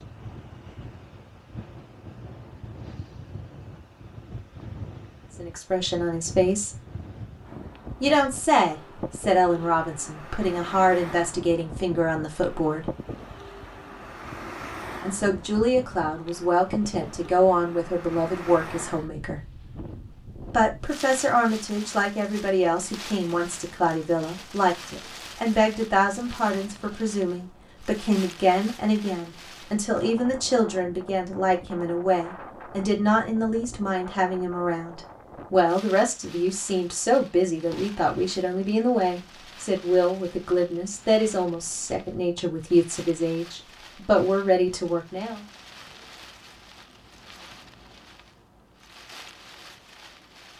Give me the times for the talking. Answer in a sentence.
The talking can be heard from 5.3 to 6.7 s, from 8.0 to 12.8 s, from 15.0 to 19.4 s and from 20.5 to 45.4 s.